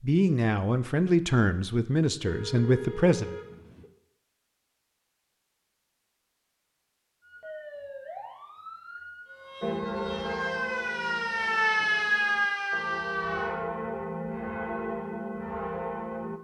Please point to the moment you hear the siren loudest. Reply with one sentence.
The loudest moment of the siren is at 12 seconds.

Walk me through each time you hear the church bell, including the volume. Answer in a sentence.
The church bell can be heard from 9.6 to 16.4 s, getting quieter then louder.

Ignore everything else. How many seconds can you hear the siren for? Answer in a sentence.
You can hear the siren for 6 seconds altogether.